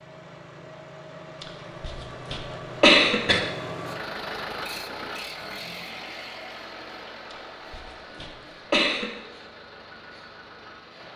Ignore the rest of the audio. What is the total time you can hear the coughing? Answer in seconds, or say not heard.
4 s.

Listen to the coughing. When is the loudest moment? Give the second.
3 s.